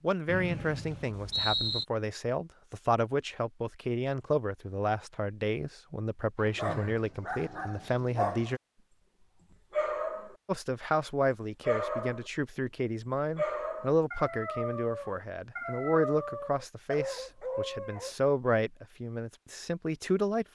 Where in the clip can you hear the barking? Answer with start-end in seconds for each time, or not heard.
6.4-8.6, 9.5-10.3, 11.6-12.3, 13.2-18.1.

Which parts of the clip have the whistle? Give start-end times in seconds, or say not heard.
0.2-1.9.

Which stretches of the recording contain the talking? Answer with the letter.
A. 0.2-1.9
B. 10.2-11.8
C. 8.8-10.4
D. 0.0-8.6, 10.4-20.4
D.